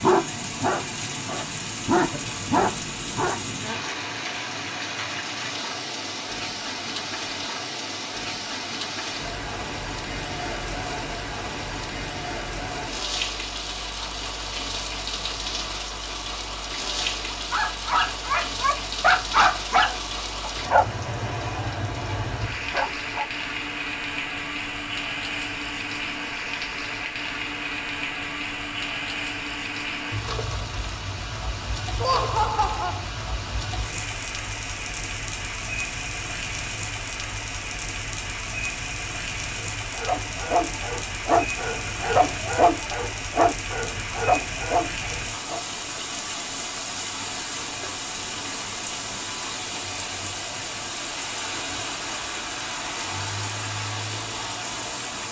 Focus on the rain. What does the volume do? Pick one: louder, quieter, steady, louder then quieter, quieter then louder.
steady.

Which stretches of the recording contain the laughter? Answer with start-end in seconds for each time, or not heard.
32.0-33.1.